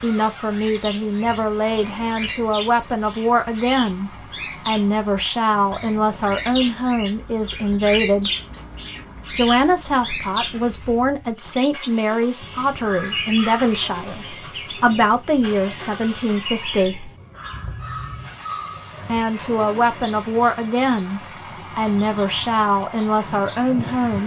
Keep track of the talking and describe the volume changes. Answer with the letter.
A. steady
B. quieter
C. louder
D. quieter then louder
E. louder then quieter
A.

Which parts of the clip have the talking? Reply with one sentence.
You can hear the talking from 0.0 to 8.3 s, from 9.3 to 17.1 s and from 19.1 to 24.2 s.